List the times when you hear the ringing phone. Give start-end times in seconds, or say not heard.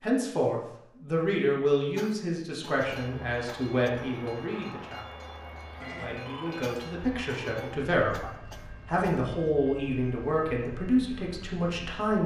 5.8-6.8.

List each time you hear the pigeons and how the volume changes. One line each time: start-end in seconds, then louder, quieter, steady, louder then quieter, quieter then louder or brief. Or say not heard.
not heard.